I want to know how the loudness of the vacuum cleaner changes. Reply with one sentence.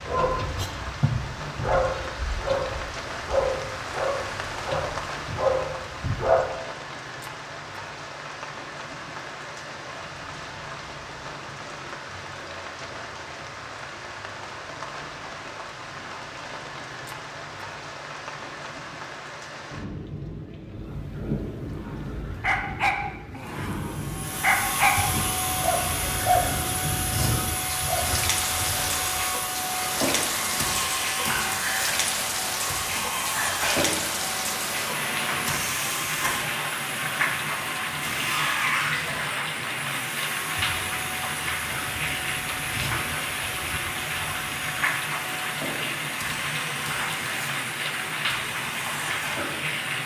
The loudness of the vacuum cleaner goes down.